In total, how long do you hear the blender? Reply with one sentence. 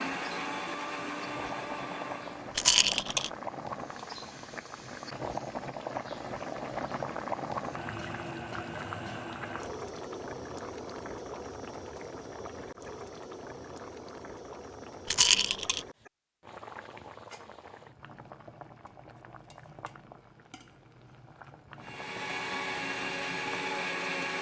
You can hear the blender for 5 seconds altogether.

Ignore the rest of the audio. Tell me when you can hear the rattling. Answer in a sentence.
The rattling can be heard from 2.5 to 3.3 s and from 15.1 to 15.8 s.